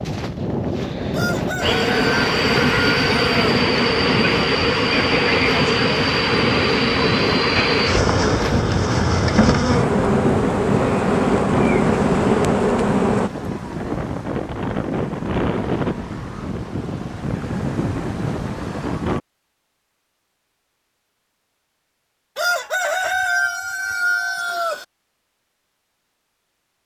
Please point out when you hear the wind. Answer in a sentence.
You can hear the wind from 0.0 to 19.2 s.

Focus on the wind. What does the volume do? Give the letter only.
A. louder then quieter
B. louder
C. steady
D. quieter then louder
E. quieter
C.